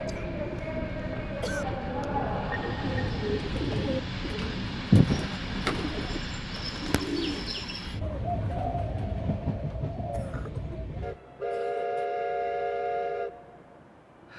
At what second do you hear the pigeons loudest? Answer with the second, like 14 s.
5 s.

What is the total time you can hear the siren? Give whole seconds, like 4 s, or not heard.
not heard.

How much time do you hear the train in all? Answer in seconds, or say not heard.
14 s.